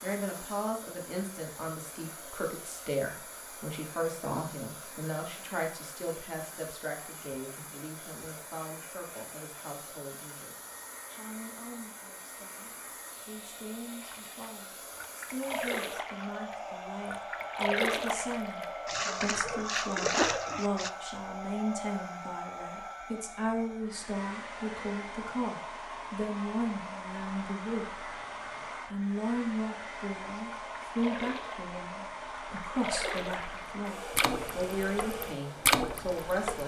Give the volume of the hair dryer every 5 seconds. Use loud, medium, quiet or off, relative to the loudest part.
medium, medium, medium, loud, loud, loud, loud, loud.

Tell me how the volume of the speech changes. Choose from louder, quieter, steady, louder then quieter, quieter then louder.
quieter then louder.